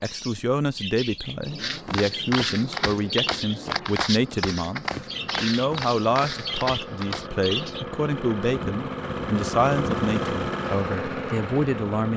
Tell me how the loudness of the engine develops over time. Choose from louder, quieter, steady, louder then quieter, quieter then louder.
louder.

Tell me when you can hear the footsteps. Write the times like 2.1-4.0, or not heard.
1.6-7.3.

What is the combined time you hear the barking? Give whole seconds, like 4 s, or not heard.
not heard.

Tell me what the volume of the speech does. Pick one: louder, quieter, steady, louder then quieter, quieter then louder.
steady.